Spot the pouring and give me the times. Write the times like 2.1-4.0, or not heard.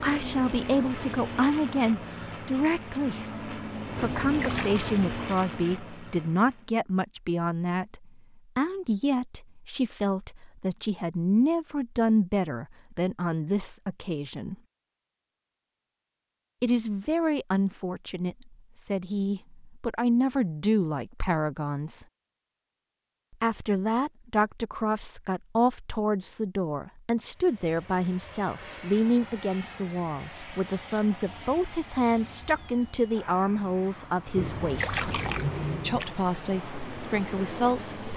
4.0-4.9, 34.4-36.1.